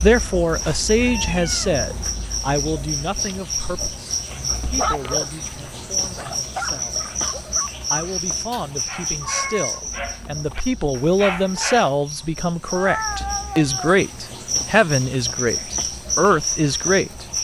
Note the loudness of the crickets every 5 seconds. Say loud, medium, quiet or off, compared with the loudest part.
loud, loud, medium, loud.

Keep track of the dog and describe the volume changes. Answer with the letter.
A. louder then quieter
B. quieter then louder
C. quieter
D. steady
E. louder
B.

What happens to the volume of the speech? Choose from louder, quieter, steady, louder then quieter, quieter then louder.
quieter then louder.